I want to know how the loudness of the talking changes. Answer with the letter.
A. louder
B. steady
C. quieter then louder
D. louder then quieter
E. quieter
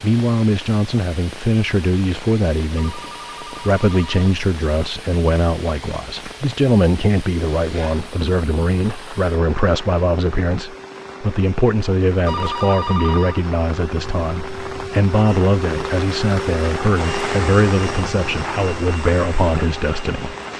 B.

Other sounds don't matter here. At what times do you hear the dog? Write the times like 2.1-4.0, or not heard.
not heard.